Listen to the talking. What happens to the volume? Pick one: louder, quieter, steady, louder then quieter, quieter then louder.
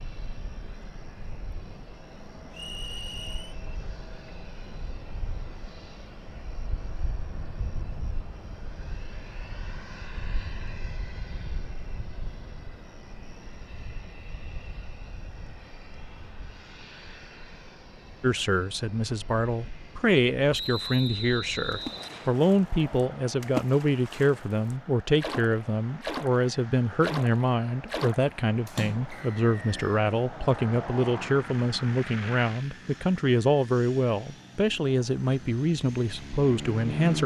steady.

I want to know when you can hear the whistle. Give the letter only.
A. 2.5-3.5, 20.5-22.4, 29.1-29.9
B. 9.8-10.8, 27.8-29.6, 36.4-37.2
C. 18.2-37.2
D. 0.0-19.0
A.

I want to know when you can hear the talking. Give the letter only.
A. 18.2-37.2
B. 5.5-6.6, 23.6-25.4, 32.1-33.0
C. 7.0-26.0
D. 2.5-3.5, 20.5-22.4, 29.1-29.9
A.